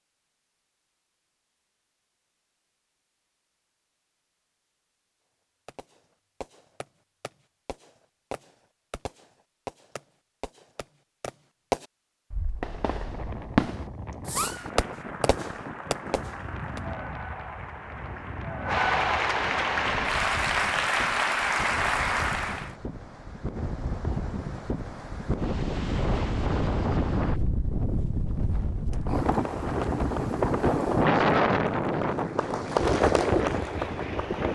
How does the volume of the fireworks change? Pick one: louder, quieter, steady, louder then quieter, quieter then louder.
louder.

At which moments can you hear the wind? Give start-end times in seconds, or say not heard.
12.6-34.5.